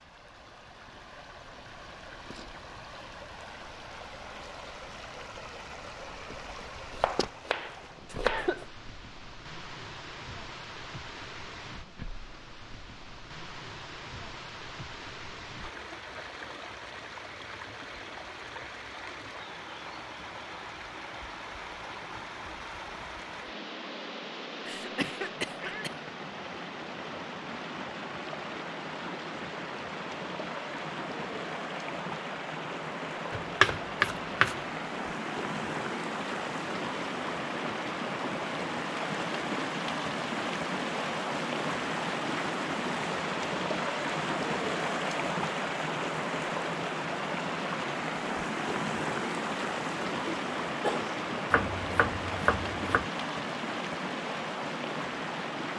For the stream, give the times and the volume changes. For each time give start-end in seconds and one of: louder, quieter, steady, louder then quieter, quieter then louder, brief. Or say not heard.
0.0-55.7 louder.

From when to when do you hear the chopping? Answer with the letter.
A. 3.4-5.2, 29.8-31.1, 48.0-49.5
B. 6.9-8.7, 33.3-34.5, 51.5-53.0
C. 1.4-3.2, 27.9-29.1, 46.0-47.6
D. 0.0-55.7
B.